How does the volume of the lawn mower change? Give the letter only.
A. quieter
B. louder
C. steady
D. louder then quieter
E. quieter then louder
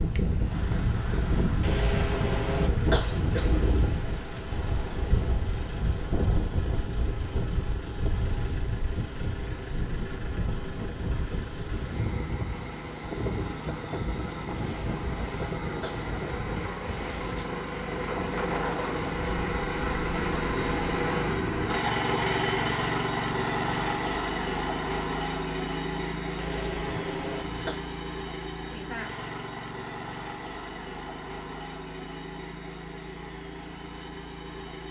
D.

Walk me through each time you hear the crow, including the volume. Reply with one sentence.
You can't hear the crow here.